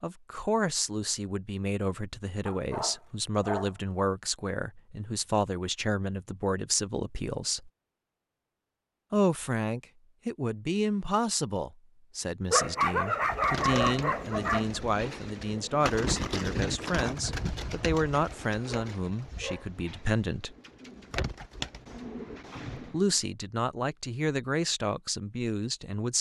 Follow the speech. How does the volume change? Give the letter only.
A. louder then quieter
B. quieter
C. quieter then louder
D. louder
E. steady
E.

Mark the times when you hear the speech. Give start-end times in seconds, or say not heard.
0.0-7.7, 9.1-20.6, 22.8-26.1.